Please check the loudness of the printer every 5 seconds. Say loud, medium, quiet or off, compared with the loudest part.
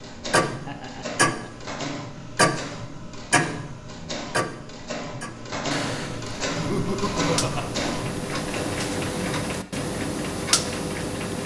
medium, loud, off.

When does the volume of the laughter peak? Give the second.
7 s.